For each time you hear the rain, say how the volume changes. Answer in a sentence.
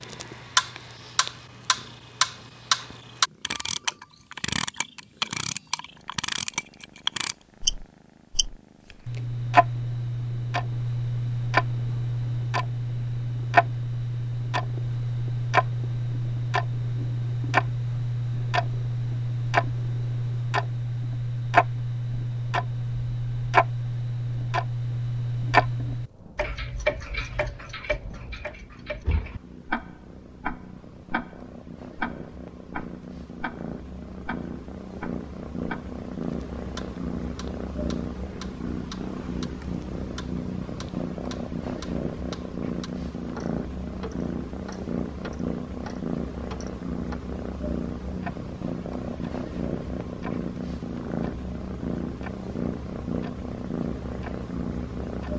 The rain can't be heard in this clip.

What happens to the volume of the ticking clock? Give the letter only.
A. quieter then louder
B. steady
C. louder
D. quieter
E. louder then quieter
D.